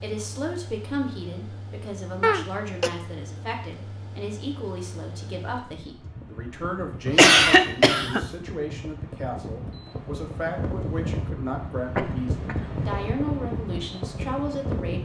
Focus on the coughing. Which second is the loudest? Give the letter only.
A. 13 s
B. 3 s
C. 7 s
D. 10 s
C.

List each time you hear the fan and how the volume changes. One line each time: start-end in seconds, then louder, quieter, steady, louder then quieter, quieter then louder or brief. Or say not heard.
0.0-14.9 louder.